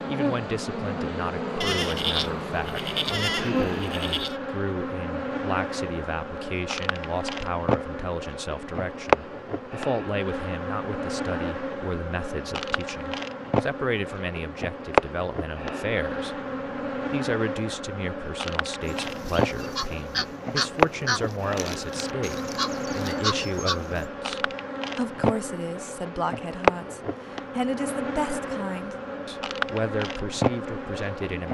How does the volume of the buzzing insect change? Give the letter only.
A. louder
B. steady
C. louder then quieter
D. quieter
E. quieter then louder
B.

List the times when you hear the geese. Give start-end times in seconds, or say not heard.
18.9-24.1.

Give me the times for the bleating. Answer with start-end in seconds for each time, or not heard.
1.6-4.4.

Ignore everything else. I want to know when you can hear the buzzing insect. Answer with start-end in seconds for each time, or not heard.
0.0-31.4.